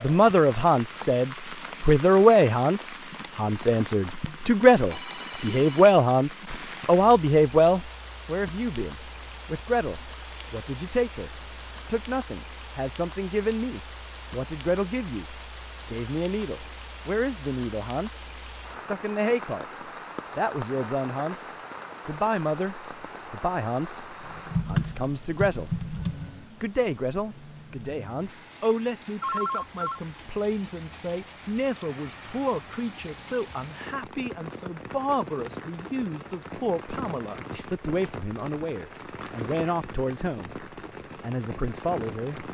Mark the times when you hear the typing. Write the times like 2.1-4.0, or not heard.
24.2-26.3.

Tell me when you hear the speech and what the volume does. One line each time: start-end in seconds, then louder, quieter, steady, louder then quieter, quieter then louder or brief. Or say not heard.
0.0-25.9 quieter
26.6-42.4 steady.